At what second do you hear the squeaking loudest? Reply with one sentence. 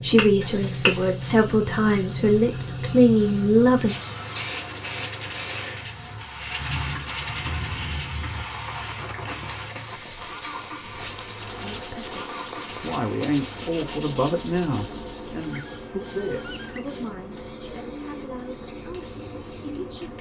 The volume of the squeaking peaks at 7 seconds.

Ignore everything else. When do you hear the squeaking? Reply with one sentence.
The squeaking can be heard from 6.6 to 8.4 s and from 15.4 to 16.9 s.